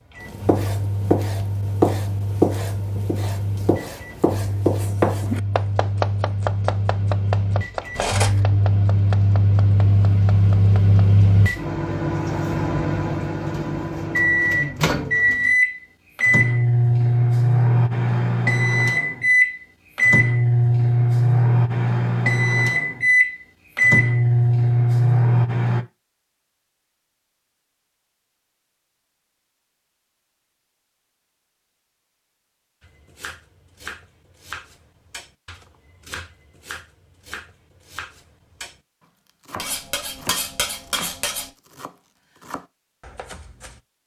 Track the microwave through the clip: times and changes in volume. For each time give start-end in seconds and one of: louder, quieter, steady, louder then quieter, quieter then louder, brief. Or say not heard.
0.1-25.9 louder.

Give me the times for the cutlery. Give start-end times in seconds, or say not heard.
8.0-8.4, 39.5-41.5.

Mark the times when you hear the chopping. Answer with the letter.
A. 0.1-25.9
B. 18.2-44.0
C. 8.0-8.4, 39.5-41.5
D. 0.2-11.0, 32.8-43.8
D.